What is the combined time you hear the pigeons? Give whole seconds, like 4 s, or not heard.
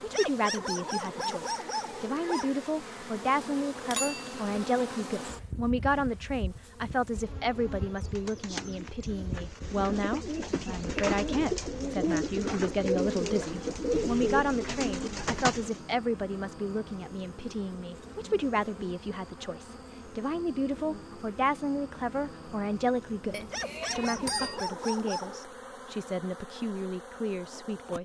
8 s.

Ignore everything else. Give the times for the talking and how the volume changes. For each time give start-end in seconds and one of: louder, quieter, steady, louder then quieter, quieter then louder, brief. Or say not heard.
0.0-28.0 steady.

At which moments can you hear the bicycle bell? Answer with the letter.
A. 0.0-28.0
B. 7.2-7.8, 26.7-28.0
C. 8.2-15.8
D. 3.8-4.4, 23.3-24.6
D.